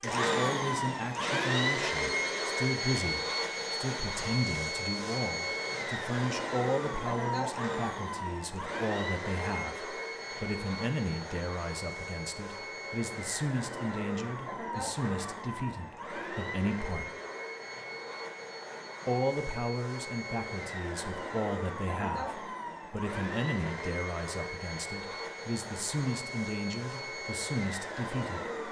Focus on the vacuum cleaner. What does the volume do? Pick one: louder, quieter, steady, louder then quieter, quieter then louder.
quieter.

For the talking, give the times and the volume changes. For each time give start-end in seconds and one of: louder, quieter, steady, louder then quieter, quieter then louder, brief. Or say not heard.
0.0-17.1 steady
19.1-28.6 steady.